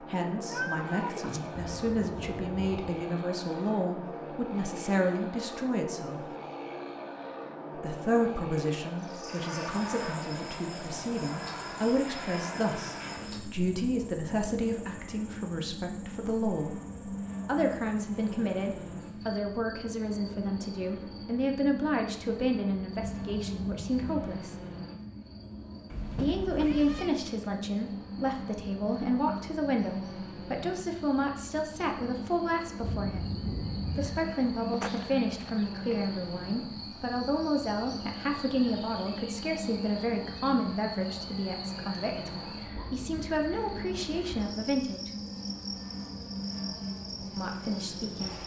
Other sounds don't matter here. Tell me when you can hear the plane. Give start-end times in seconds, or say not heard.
0.0-48.4.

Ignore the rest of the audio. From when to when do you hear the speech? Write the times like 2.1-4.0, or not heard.
0.0-6.3, 7.8-16.8, 17.4-24.6, 26.1-33.3, 34.0-45.1, 47.4-48.4.